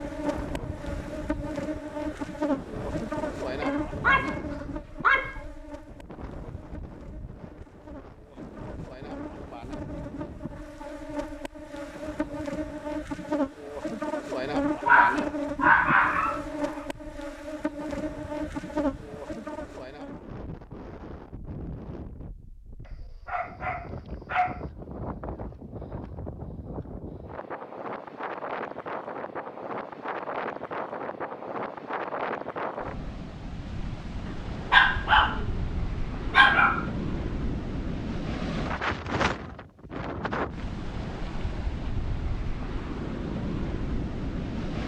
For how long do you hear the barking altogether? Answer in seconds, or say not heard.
8 s.